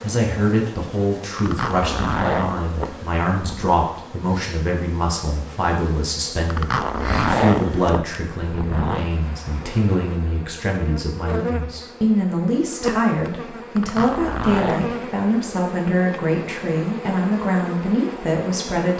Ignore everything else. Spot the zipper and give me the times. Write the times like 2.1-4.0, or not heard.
1.4-3.9, 6.5-9.1, 13.8-14.9.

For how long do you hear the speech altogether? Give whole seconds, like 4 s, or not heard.
19 s.